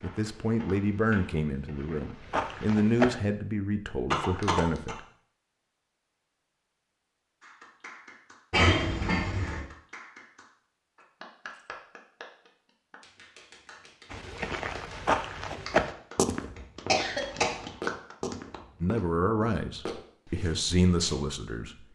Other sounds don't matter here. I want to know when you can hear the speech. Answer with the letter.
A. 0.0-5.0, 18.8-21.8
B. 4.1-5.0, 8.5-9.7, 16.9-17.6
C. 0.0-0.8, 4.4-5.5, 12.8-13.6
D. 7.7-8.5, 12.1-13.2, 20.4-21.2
A.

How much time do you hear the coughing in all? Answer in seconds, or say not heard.
3 s.